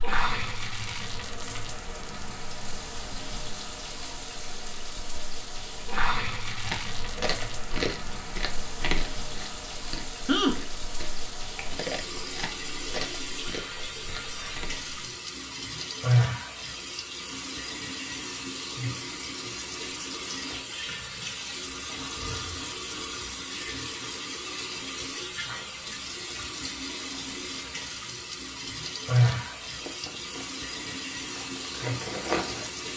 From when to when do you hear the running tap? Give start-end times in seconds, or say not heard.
0.0-32.9.